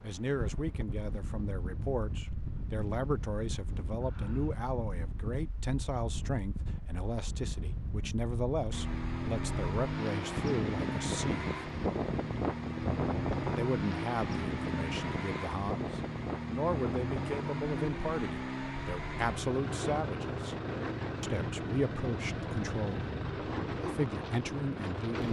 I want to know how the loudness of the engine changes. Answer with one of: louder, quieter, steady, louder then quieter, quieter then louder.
steady.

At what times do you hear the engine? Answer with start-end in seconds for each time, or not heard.
8.7-25.2.